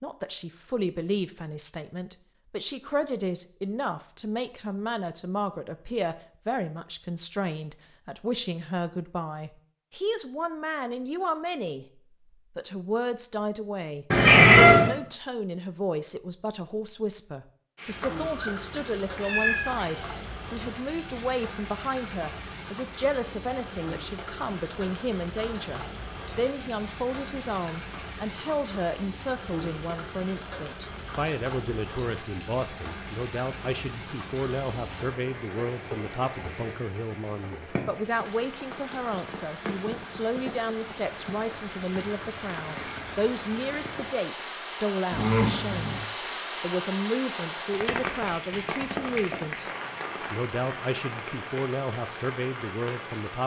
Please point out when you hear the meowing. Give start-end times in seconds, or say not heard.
14.1-14.9, 18.0-20.2, 45.1-46.0.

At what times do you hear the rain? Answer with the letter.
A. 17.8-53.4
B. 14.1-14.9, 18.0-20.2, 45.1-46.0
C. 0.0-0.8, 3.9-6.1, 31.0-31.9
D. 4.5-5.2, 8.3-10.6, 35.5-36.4
A.